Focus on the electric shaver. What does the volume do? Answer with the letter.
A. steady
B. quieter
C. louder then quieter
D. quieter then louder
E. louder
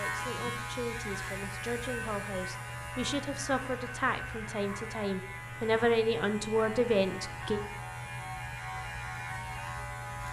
A.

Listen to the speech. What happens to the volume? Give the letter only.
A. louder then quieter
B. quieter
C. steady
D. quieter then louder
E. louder
E.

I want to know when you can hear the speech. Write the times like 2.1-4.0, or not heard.
0.0-7.6.